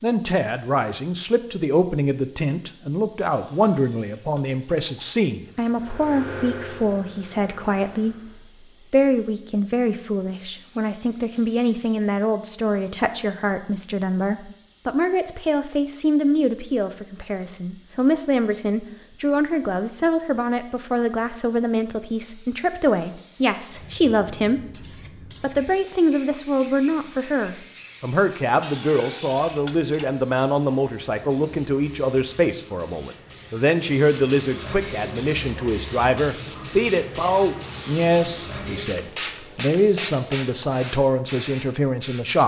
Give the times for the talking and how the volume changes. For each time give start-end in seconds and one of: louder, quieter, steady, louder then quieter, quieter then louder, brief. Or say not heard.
0.0-42.4 steady.